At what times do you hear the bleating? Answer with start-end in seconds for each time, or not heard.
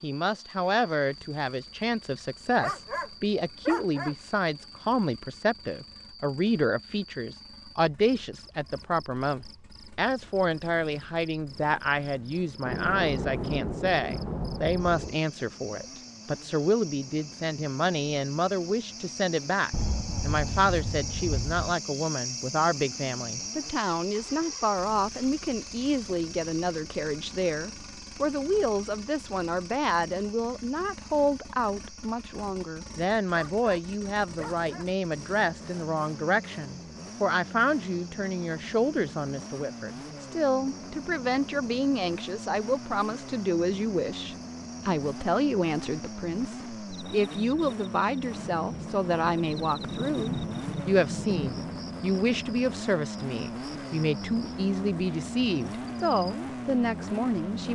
not heard.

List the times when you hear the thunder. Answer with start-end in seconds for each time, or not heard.
12.7-15.2, 19.7-21.8, 48.4-51.6.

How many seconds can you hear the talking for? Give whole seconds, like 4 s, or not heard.
58 s.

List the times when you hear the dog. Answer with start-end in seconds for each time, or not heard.
2.5-4.2, 33.3-34.9.